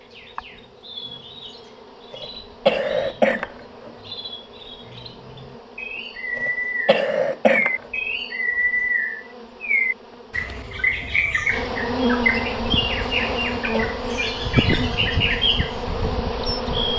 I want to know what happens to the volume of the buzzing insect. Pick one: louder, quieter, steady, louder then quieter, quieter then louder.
louder.